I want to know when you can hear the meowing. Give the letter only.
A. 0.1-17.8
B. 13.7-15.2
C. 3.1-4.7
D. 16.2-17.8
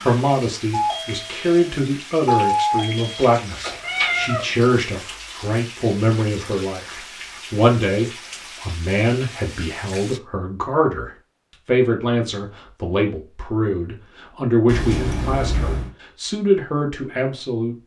C.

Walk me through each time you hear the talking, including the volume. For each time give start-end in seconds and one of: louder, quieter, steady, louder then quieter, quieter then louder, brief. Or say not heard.
0.1-17.8 steady.